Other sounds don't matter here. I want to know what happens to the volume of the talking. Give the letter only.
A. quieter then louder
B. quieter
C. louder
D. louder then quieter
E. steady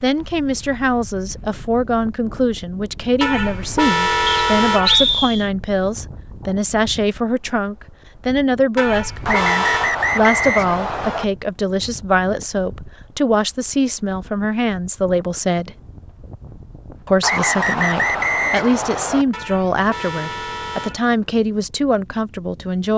E.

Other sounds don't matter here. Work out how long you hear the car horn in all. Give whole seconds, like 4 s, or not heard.
5 s.